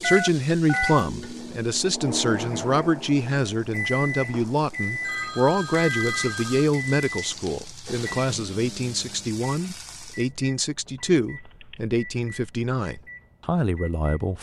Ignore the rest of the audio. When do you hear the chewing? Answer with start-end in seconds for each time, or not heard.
not heard.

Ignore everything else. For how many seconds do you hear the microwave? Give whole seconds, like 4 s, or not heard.
14 s.